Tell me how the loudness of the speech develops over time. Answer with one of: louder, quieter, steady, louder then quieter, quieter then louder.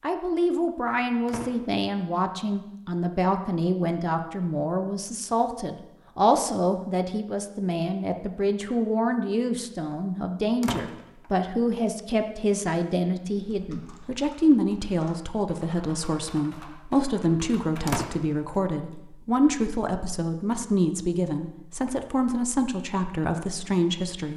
steady.